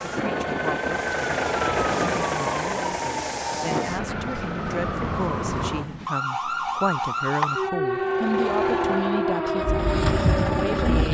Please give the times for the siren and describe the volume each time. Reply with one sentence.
You can hear the siren from 0.0 to 11.0 s, getting louder.